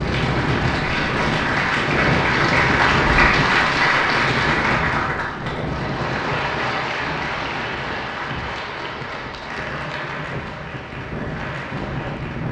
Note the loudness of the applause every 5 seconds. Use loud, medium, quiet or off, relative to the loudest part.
loud, medium, quiet.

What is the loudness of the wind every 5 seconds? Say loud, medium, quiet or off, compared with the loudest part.
loud, medium, medium.